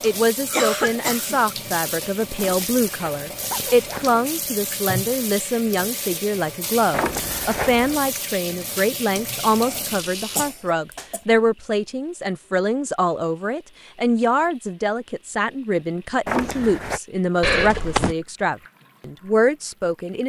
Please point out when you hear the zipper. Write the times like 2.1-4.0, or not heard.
2.4-4.1, 6.9-8.0, 16.2-17.0.